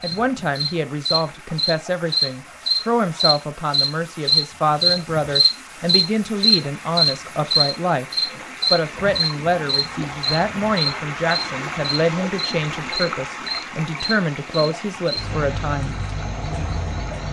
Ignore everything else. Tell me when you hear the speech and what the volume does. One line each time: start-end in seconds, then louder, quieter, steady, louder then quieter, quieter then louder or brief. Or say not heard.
0.0-8.1 steady
8.7-15.9 steady.